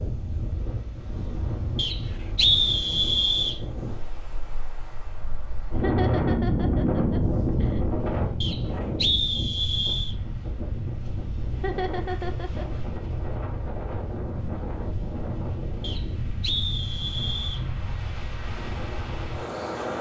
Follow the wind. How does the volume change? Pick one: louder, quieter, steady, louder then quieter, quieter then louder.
louder then quieter.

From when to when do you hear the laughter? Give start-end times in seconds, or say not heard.
5.8-7.8, 11.6-12.8.